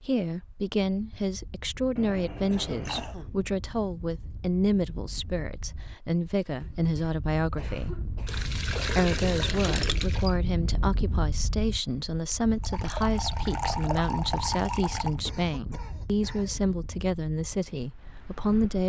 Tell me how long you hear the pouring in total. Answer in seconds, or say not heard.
6 s.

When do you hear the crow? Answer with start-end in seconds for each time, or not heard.
not heard.